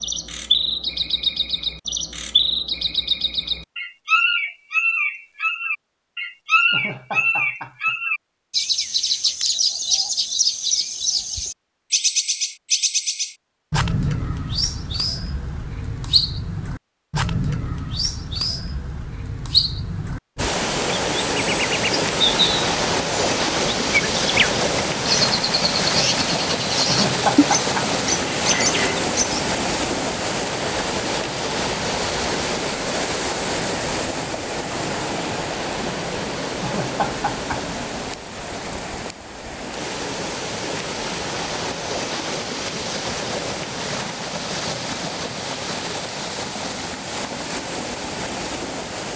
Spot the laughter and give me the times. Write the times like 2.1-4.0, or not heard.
6.7-8.0, 26.9-27.9, 36.6-37.6.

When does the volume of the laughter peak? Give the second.
27 s.